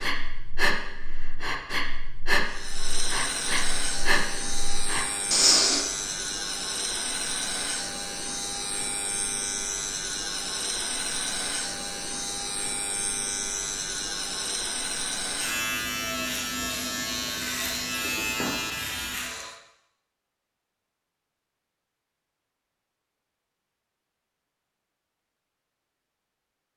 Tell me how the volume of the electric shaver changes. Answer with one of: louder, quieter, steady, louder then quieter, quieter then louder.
steady.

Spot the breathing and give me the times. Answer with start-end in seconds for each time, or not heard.
0.0-5.8.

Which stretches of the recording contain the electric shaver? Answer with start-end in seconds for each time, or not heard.
2.5-19.6.